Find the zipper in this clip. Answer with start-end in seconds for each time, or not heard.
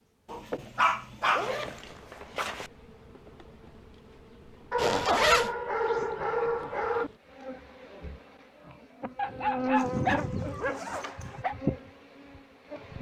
1.2-2.7, 4.8-5.5, 9.8-11.4.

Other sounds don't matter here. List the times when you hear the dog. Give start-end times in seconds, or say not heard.
0.3-1.8, 4.7-7.1, 9.2-11.6.